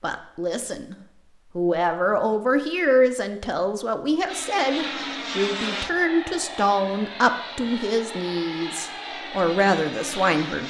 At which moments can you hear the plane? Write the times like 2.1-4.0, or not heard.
4.2-10.6.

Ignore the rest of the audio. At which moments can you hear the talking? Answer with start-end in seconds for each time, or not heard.
0.0-0.9, 1.6-10.6.